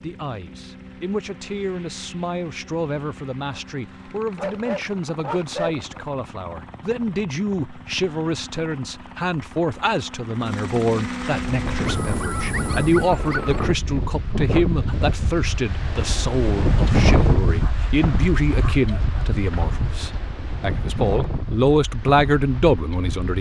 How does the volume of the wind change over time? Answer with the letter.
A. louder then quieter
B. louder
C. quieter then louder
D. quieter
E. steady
A.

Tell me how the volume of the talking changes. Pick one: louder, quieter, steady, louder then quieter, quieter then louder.
louder.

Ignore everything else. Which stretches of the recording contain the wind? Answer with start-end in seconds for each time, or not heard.
11.4-23.3.